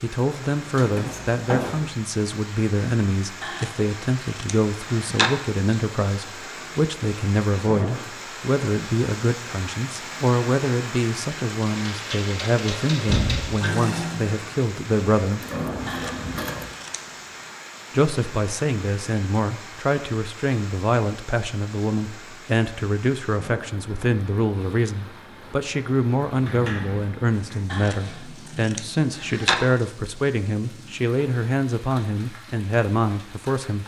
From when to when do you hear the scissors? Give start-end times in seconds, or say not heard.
3.4-5.3, 15.8-17.0, 27.7-29.6.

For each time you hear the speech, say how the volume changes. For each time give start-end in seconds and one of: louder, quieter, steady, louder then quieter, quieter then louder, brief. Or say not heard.
0.0-15.4 steady
17.9-33.8 steady.